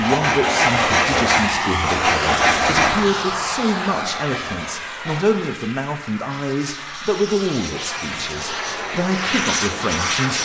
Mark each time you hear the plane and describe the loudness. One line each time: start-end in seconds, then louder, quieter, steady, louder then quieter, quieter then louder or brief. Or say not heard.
0.0-10.4 quieter then louder.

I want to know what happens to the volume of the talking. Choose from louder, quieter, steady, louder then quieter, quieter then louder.
steady.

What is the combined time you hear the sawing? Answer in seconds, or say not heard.
5 s.